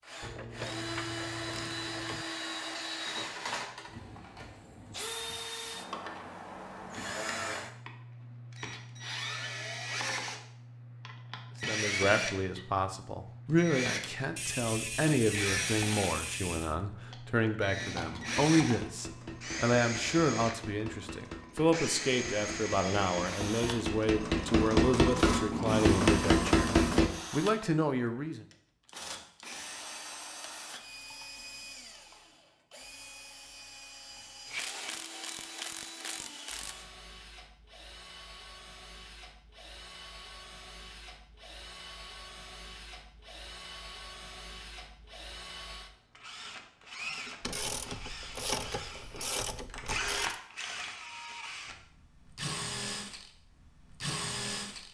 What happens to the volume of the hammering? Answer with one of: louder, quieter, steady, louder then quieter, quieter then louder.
louder.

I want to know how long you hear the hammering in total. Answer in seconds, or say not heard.
9 s.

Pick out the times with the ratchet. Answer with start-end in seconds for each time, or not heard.
0.2-2.2, 14.3-16.8, 34.5-36.9, 47.4-50.4.